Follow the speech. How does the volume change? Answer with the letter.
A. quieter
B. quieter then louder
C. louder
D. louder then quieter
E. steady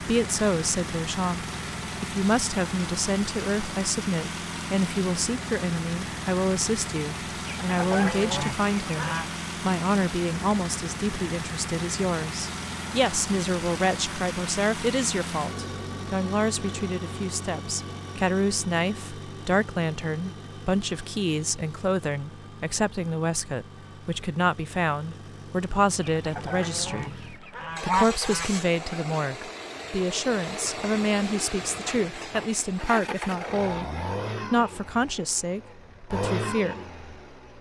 E.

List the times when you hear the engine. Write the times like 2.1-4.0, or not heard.
0.0-37.5.